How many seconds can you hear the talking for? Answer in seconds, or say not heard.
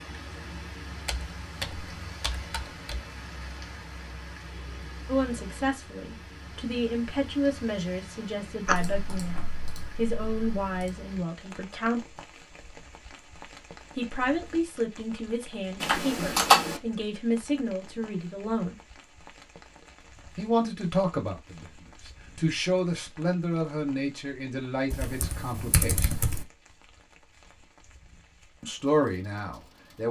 19 s.